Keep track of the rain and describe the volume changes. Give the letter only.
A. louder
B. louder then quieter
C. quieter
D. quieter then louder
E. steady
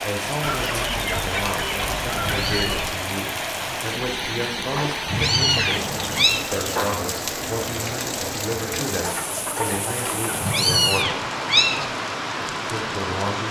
E.